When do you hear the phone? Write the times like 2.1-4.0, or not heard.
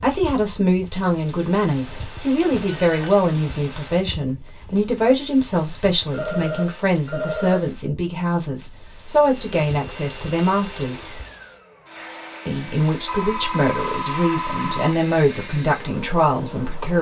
1.8-3.1, 6.1-7.7, 13.1-14.9.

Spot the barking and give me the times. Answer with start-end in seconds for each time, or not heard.
not heard.